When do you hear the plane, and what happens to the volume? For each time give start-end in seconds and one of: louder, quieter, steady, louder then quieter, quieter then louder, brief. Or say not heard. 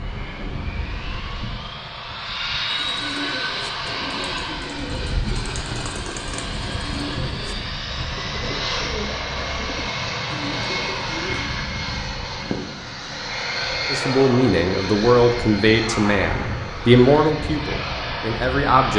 0.0-18.9 steady.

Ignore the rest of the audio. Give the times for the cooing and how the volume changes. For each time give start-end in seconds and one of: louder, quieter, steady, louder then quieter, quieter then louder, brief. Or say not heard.
2.6-11.6 steady.